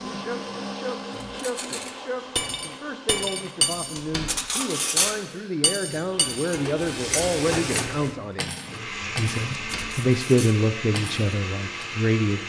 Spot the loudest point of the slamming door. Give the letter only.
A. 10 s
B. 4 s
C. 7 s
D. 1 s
B.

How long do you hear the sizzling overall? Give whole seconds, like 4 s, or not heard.
2 s.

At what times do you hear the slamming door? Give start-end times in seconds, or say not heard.
4.0-4.4, 9.6-10.0.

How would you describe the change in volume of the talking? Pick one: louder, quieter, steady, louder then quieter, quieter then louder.
louder.